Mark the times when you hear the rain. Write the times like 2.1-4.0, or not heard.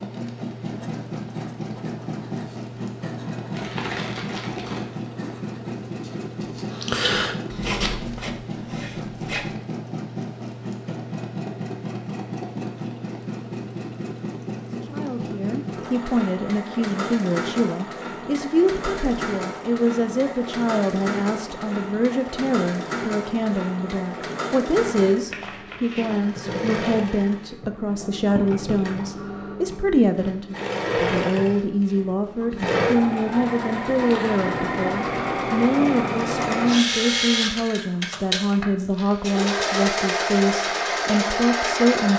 not heard.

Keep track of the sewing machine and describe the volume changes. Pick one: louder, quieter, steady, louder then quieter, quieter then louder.
louder.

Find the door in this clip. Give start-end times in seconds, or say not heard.
not heard.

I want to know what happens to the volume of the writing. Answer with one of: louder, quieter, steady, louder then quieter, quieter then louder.
louder then quieter.